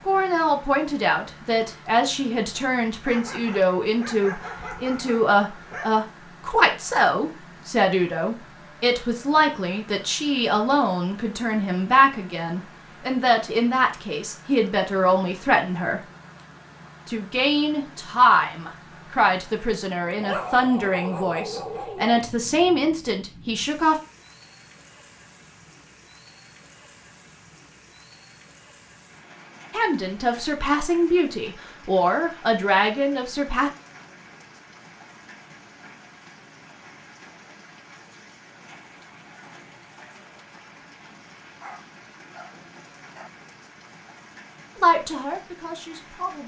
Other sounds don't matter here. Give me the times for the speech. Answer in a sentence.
The speech can be heard from 0.1 to 16.0 s, from 17.1 to 23.9 s, from 29.7 to 33.7 s and from 44.8 to 46.4 s.